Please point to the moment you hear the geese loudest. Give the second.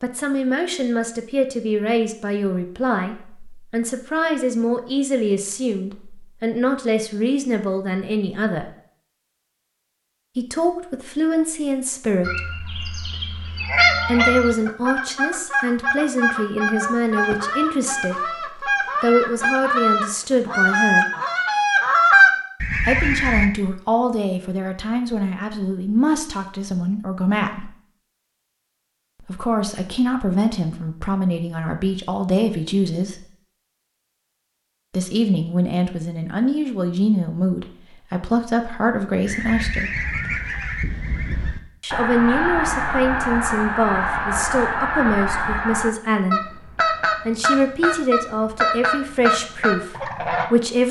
22 s.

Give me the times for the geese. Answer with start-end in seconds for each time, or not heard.
12.2-23.5, 39.2-50.5.